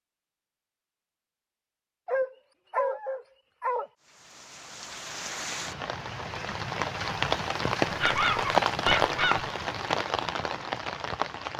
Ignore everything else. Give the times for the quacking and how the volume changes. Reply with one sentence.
The quacking can't be heard in this clip.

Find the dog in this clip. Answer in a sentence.
The dog can be heard from 2.0 to 3.9 s and from 7.8 to 9.4 s.